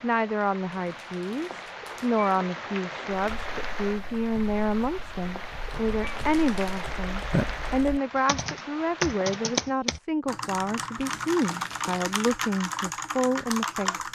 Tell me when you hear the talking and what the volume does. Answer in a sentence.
You can hear the talking from 0.0 to 14.1 s, at a steady volume.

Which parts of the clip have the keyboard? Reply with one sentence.
You can hear the keyboard from 3.1 to 14.1 s.